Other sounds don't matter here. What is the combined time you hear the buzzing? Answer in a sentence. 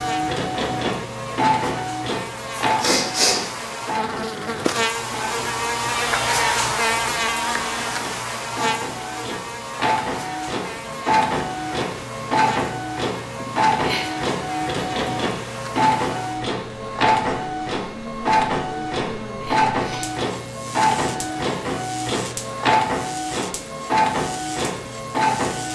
You can hear the buzzing for 26 seconds altogether.